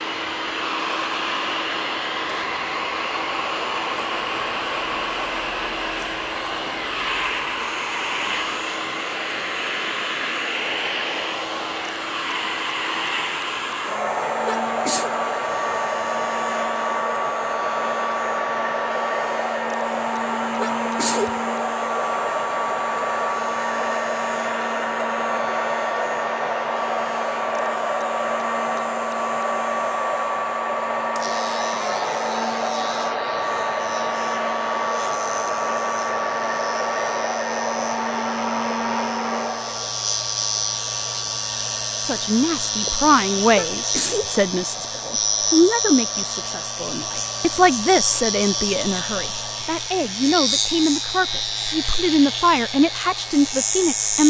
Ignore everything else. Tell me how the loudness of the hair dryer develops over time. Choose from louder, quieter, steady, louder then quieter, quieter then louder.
quieter.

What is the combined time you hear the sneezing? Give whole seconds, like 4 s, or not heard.
2 s.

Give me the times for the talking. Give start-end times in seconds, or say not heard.
42.0-54.2.